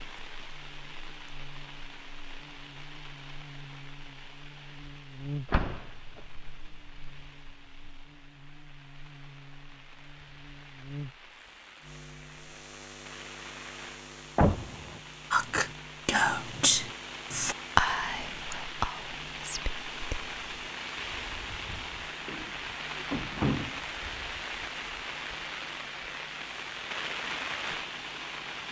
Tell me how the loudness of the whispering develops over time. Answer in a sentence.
The loudness of the whispering goes down.